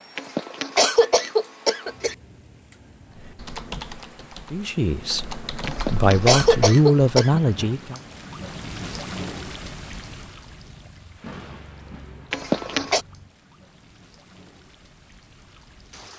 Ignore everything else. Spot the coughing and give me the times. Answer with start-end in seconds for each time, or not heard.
0.1-2.1, 5.7-7.4, 12.3-13.1.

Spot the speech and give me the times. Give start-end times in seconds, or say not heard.
4.5-8.0.